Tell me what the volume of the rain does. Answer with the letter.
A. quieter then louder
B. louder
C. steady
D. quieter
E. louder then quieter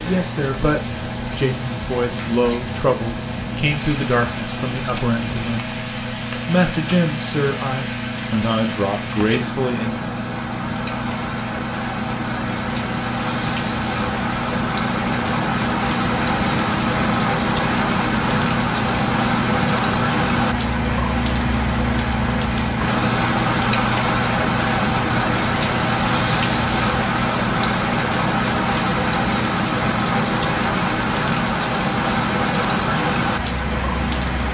B.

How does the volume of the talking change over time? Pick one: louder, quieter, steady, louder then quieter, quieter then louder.
steady.